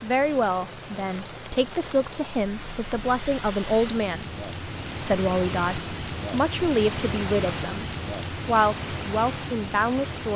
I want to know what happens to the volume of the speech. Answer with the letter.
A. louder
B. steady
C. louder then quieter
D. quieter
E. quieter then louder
B.